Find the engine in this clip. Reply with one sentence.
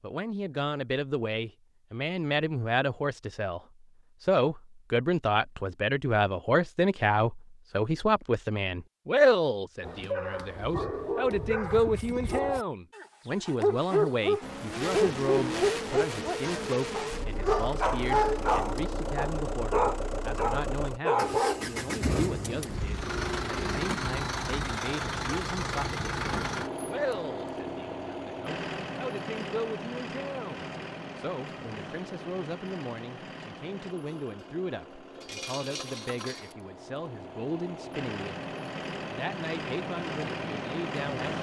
You can hear the engine from 14.4 to 41.3 s.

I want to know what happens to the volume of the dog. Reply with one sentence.
The loudness of the dog goes up.